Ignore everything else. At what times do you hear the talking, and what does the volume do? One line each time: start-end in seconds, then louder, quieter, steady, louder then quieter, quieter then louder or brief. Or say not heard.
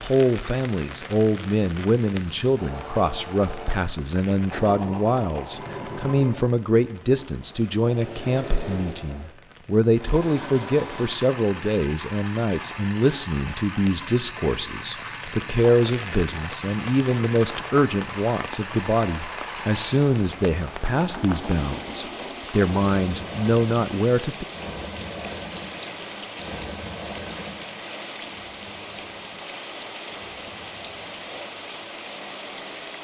0.0-24.4 steady.